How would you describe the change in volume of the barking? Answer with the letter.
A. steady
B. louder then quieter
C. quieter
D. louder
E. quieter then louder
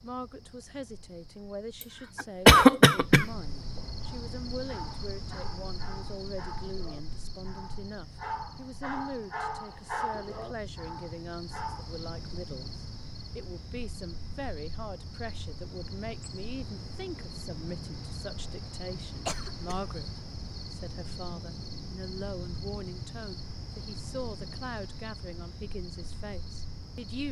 B.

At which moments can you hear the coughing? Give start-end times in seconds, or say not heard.
2.1-3.2, 19.2-19.9.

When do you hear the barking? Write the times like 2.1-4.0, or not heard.
4.0-12.0.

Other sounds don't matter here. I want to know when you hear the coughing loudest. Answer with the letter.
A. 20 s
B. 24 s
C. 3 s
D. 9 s
C.